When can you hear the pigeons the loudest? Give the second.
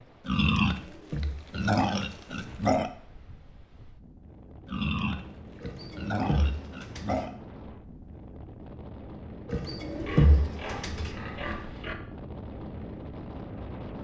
10 s.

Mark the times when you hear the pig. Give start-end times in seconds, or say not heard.
0.2-2.9, 4.7-7.3, 9.9-11.9.